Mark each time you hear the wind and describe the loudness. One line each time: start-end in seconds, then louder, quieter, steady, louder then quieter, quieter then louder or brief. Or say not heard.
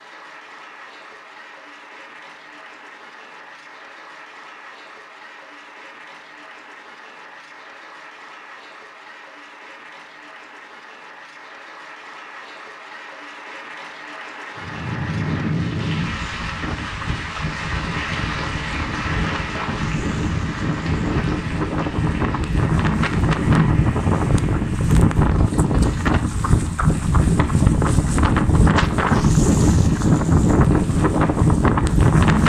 14.6-32.4 louder.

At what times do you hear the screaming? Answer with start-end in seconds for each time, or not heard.
not heard.